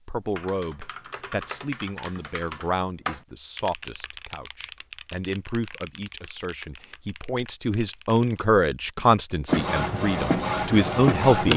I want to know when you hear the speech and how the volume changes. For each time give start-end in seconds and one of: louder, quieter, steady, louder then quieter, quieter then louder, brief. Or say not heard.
0.1-11.5 louder.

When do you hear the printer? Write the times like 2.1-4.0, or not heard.
9.4-11.5.